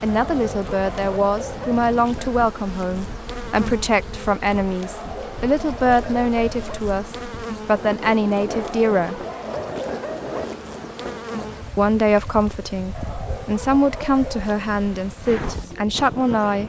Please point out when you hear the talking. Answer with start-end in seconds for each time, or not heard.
0.0-9.2, 11.8-16.6.